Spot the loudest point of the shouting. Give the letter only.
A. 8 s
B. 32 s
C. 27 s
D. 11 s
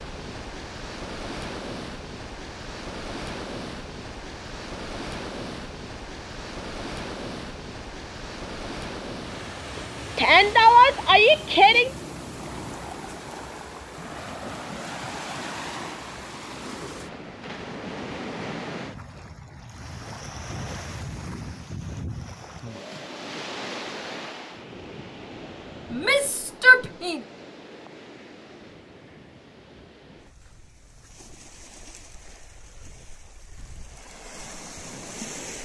D.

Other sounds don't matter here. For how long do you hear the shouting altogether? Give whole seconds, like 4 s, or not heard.
3 s.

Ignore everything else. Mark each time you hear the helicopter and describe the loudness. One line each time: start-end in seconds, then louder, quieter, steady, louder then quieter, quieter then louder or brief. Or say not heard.
not heard.